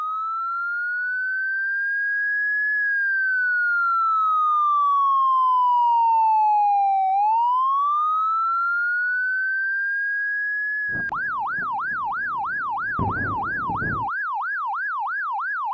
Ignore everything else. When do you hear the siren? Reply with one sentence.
You can hear the siren from 0.0 to 15.7 s.